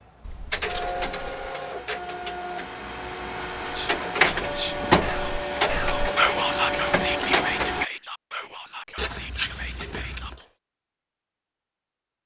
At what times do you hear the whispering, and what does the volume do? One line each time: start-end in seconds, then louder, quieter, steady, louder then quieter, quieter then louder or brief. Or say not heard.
3.6-10.5 louder then quieter.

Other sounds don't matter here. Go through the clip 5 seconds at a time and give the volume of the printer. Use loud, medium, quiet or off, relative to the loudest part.
loud, loud, off.